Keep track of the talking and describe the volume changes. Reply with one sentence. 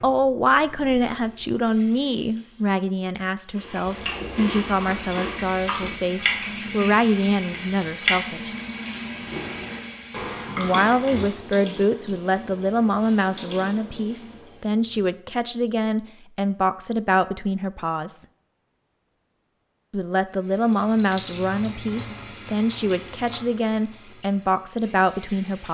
The volume of the talking stays about the same.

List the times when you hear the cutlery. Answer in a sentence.
The cutlery can't be heard in this clip.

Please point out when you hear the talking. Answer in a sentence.
You can hear the talking from 0.0 to 8.5 s, from 10.6 to 18.2 s and from 19.9 to 25.7 s.